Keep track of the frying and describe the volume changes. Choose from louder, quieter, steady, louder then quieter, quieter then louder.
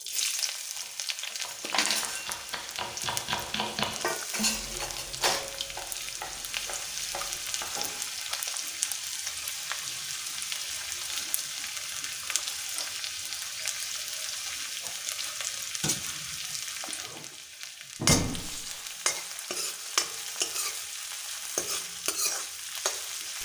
steady.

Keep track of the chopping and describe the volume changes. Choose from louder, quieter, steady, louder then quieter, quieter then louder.
louder then quieter.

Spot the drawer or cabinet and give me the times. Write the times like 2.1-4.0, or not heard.
17.9-18.6.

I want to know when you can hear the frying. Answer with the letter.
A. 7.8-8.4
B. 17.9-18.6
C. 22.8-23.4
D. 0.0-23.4
D.